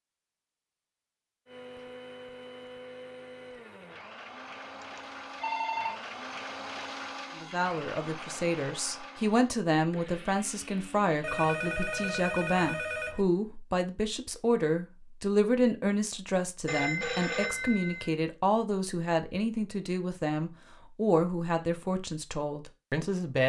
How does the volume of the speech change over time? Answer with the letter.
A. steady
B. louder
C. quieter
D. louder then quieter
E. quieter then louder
A.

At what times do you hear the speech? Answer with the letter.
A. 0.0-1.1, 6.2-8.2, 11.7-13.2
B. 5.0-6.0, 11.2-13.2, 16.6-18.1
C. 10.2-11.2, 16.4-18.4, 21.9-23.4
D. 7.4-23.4
D.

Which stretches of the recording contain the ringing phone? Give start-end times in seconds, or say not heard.
5.0-6.0, 11.2-13.2, 16.6-18.1.